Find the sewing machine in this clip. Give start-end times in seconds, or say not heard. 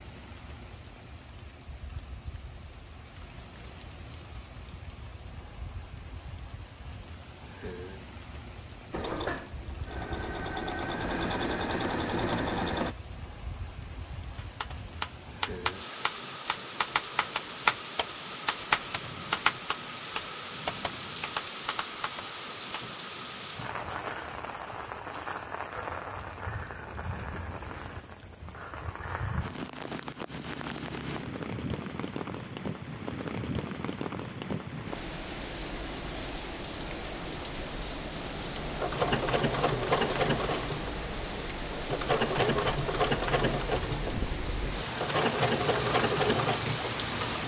8.9-12.9, 38.4-47.4.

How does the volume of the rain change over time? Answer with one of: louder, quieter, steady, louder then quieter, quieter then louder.
louder.